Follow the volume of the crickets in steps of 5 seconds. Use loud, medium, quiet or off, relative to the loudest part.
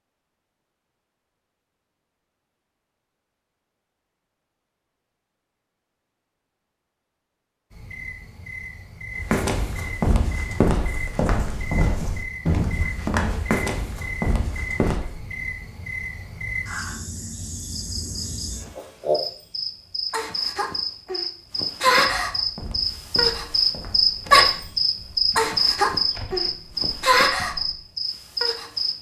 off, quiet, quiet, medium, loud, loud.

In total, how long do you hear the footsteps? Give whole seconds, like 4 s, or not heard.
12 s.